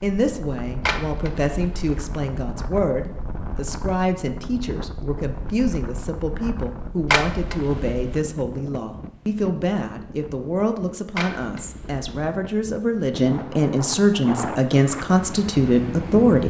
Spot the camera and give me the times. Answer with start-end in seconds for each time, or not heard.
0.8-1.9, 7.1-8.2, 11.2-12.1.